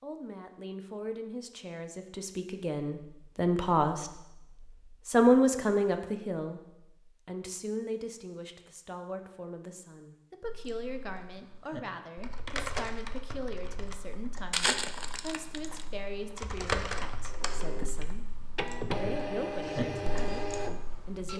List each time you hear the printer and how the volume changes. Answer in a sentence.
The printer can be heard from 17.2 to 21.3 s, getting louder.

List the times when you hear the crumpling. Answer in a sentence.
You can hear the crumpling from 14.5 to 15.8 s.